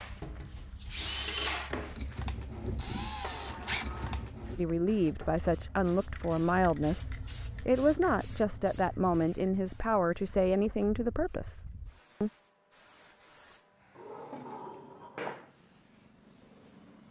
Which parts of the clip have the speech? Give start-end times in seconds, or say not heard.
4.5-12.3.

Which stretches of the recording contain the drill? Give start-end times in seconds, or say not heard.
0.0-4.6.